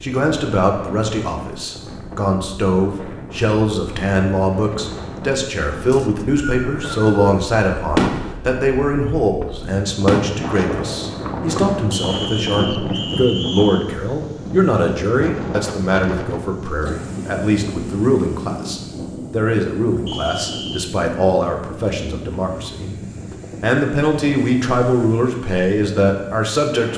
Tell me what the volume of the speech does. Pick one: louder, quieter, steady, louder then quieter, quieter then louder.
steady.